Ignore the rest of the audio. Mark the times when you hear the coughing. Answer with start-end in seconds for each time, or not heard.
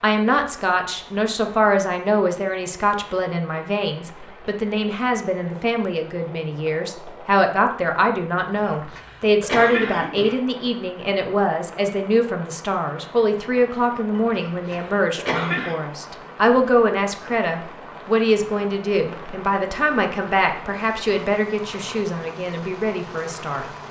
8.6-10.4, 14.2-15.8.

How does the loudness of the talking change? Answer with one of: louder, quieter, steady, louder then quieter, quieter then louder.
steady.